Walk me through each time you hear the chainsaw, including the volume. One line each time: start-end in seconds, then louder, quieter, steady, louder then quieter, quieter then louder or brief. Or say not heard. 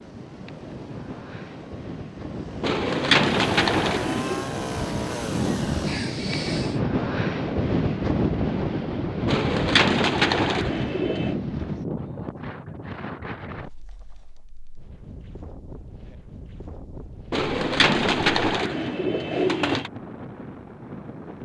0.0-6.8 louder.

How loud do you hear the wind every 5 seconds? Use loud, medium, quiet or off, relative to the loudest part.
medium, loud, medium, quiet, quiet.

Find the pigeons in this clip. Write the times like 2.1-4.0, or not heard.
2.6-4.5, 9.2-11.3, 17.3-19.9.